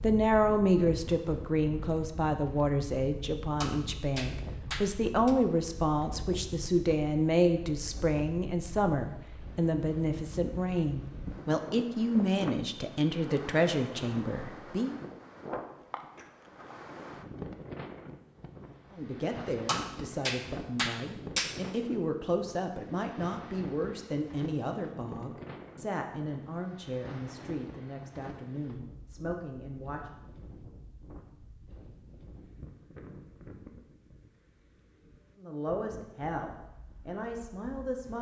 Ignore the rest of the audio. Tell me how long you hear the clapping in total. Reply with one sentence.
The clapping can be heard for 4 seconds in total.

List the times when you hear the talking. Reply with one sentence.
The talking can be heard from 0.0 to 14.9 s, from 18.9 to 30.1 s and from 35.4 to 38.1 s.